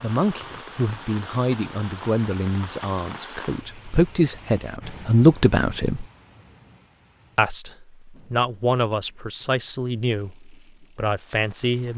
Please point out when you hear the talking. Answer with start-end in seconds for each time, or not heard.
0.0-6.0, 7.3-11.9.